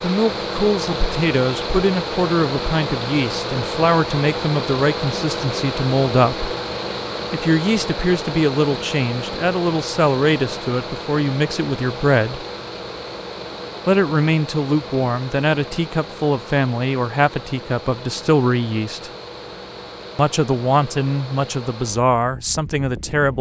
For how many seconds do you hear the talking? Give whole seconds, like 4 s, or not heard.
20 s.